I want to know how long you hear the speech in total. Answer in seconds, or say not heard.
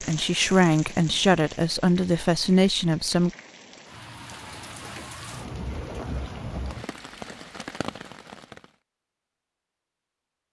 3 s.